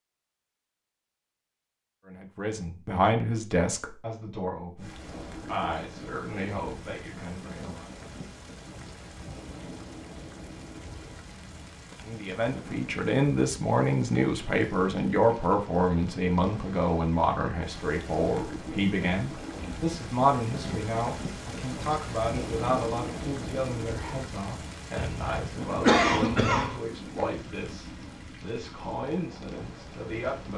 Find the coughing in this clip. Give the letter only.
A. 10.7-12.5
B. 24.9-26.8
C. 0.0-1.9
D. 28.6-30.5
B.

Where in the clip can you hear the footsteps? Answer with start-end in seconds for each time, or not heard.
not heard.